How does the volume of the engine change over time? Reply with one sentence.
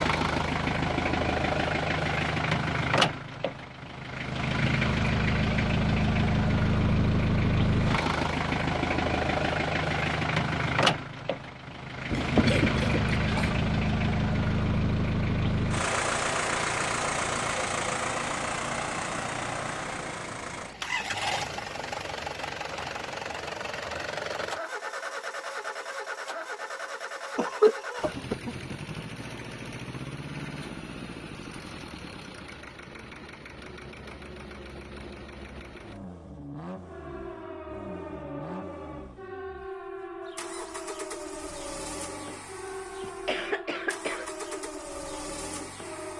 The loudness of the engine goes down.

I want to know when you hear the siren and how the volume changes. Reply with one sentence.
The siren can be heard from 36.8 to 46.1 s, at a steady volume.